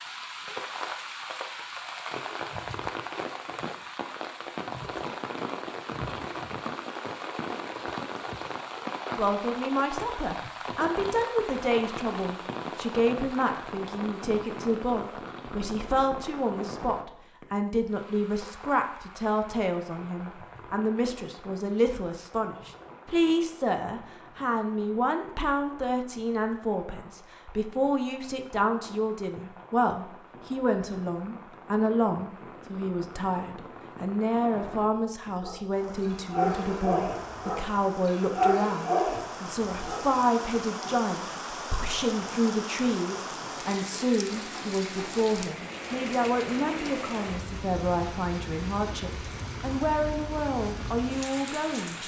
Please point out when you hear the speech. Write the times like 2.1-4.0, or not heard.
9.2-52.0.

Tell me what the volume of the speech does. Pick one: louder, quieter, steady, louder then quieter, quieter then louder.
steady.